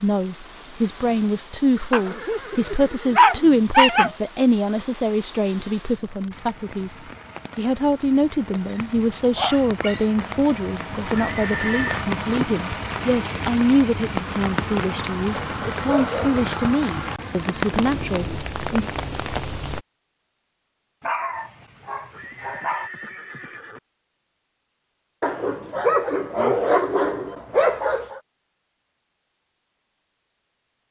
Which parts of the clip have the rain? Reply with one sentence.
The rain can be heard from 0.0 to 19.9 s.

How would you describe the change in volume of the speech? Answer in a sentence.
The volume of the speech stays about the same.